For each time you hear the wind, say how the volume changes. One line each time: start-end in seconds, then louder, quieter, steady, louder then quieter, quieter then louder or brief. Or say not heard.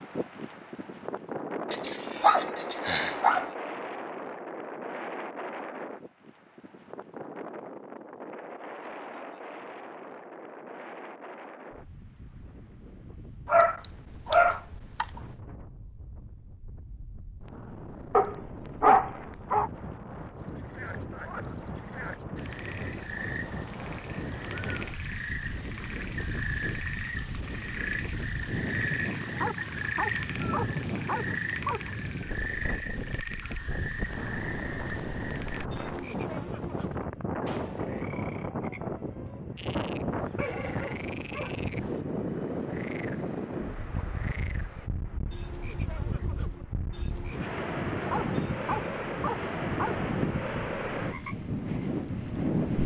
0.0-52.8 quieter then louder.